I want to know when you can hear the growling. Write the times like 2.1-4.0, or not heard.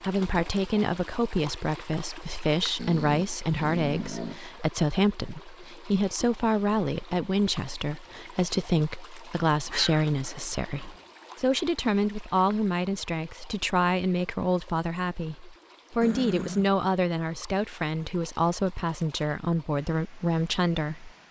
2.8-4.4, 9.7-11.0, 16.0-16.7.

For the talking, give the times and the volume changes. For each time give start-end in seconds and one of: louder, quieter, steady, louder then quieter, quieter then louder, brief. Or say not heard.
0.0-21.2 steady.